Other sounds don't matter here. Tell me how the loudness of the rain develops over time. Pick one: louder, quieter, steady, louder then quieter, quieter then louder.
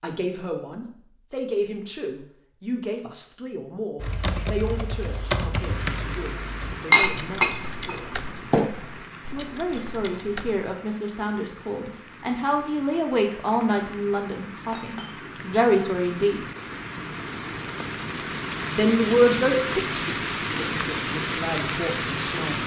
quieter then louder.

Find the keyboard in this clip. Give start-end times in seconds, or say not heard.
4.0-10.8.